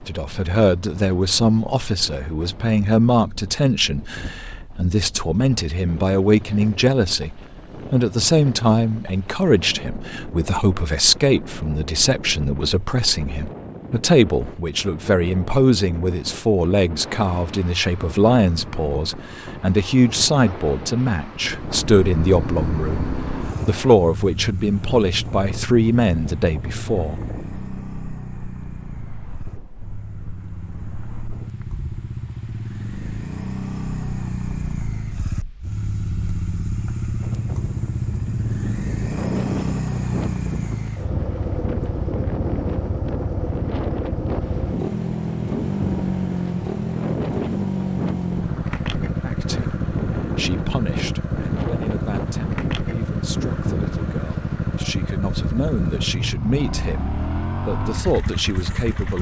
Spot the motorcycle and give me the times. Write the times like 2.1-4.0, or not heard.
21.6-59.1.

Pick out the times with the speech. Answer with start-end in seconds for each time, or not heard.
0.0-27.2, 49.2-59.1.